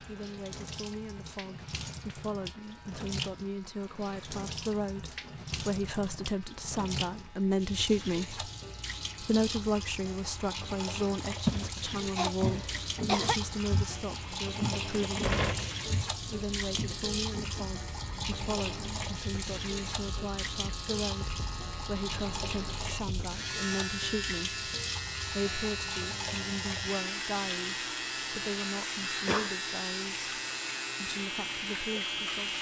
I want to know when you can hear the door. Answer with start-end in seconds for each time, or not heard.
14.9-15.8.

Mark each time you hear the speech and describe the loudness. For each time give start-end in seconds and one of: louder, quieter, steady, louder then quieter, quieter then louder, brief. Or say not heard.
0.0-8.4 louder
9.2-15.3 quieter
16.2-24.6 steady
25.3-30.2 steady
31.0-32.5 brief.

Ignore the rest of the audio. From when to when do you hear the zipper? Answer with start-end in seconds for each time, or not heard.
not heard.